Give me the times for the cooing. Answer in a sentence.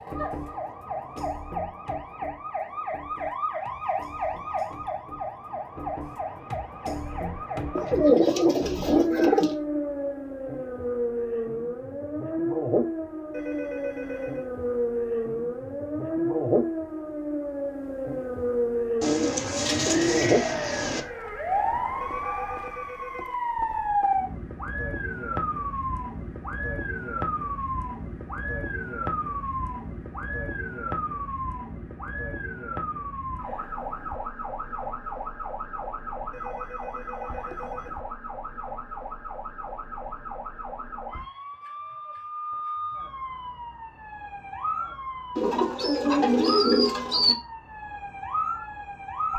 The cooing can be heard from 7.8 to 9.6 s, from 19.0 to 21.0 s and from 45.4 to 47.4 s.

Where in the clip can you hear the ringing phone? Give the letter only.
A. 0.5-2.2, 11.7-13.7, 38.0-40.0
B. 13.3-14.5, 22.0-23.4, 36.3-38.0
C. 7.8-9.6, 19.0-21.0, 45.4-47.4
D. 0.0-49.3
B.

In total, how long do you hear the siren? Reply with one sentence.
The siren can be heard for 49 seconds in total.